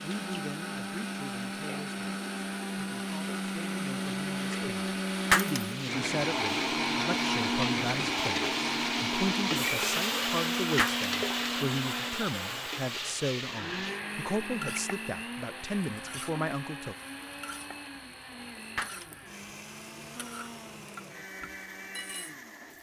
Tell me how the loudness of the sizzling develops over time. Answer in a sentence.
The loudness of the sizzling goes up, then down.